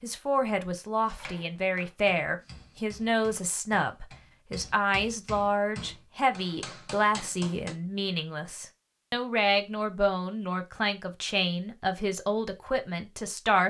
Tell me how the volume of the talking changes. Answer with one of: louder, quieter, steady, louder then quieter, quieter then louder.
steady.